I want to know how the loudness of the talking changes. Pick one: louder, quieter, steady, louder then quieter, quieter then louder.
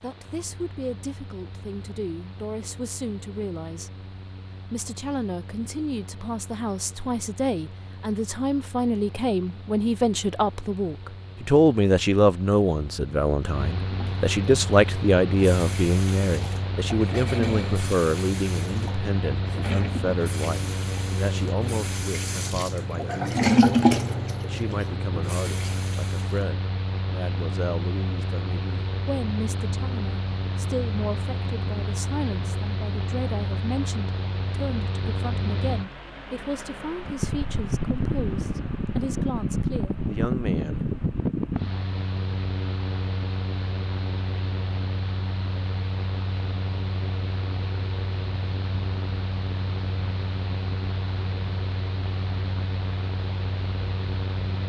louder then quieter.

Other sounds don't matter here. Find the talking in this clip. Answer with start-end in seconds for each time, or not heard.
0.0-4.0, 4.7-40.9.